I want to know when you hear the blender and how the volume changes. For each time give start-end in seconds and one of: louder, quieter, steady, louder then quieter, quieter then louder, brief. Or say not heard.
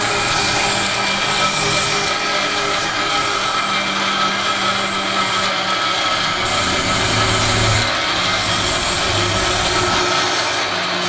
0.0-11.0 steady.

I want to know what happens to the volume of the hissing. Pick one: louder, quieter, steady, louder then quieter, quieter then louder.
quieter then louder.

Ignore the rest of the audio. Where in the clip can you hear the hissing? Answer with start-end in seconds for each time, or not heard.
0.0-11.0.